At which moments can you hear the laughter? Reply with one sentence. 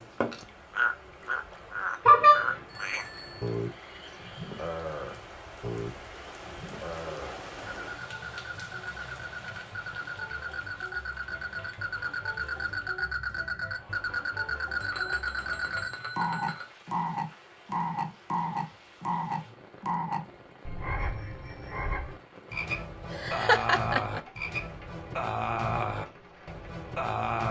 You can hear the laughter from 23.1 to 24.2 s.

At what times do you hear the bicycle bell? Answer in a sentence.
You can hear the bicycle bell from 2.0 to 3.5 s, from 14.8 to 16.7 s and from 20.9 to 21.9 s.